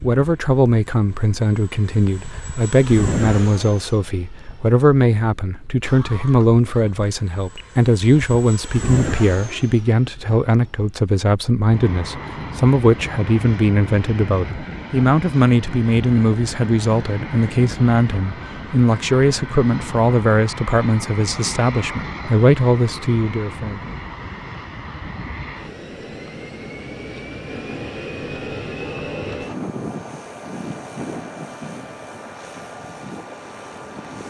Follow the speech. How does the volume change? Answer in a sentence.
The loudness of the speech stays about the same.